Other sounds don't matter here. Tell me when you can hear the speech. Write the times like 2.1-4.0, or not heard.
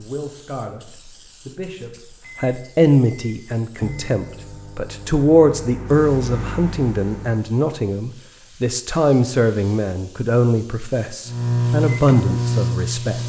0.0-13.2.